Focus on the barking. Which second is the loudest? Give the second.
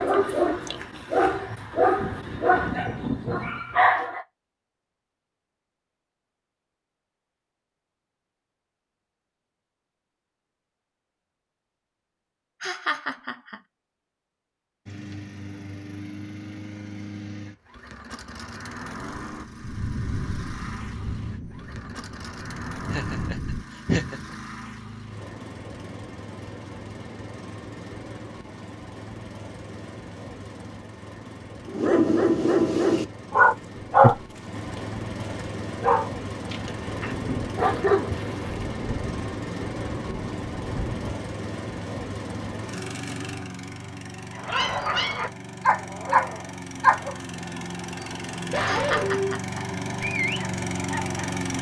34 s.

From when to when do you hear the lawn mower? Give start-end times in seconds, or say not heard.
14.8-51.5.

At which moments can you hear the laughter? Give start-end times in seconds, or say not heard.
12.6-13.6, 22.9-24.4, 48.6-49.6.